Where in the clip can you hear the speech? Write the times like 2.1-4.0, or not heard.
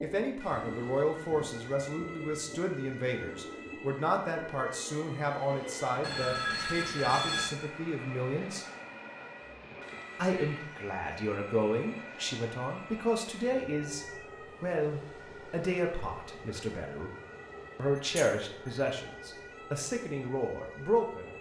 0.0-8.7, 10.2-17.1, 17.8-21.3.